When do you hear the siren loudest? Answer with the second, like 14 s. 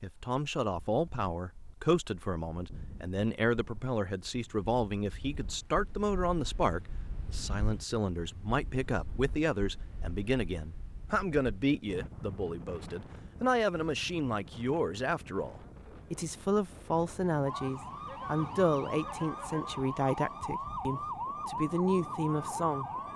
21 s.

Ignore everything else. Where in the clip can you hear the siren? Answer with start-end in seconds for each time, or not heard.
17.4-23.1.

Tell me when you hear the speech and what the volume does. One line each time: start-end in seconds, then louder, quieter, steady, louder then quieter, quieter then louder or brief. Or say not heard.
0.0-22.9 steady.